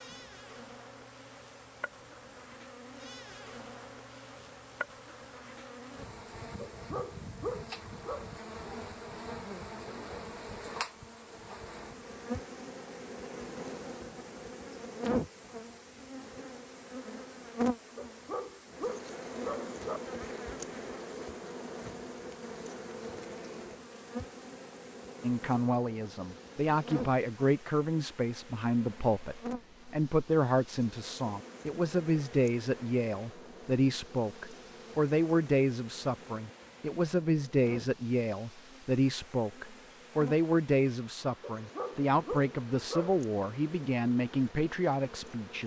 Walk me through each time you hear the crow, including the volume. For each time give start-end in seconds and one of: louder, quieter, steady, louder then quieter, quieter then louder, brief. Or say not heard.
not heard.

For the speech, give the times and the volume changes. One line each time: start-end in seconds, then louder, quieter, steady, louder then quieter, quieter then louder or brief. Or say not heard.
25.2-45.6 steady.